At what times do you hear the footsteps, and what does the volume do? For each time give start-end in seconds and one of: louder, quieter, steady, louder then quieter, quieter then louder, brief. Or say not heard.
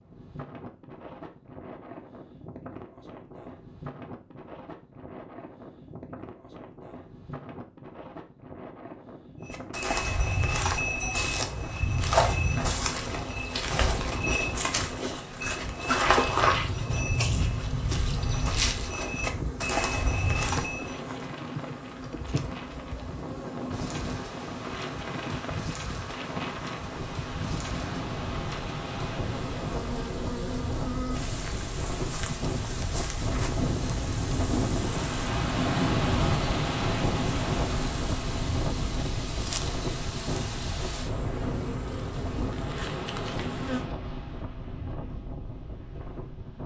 9.5-20.9 steady.